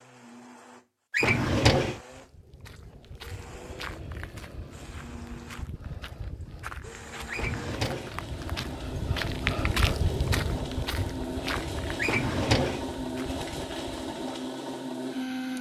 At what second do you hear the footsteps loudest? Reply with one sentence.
The loudest moment of the footsteps is at 10 seconds.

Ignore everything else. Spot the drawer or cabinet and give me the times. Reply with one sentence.
The drawer or cabinet can be heard from 1.1 to 2.0 s, from 7.3 to 8.2 s and from 11.9 to 12.8 s.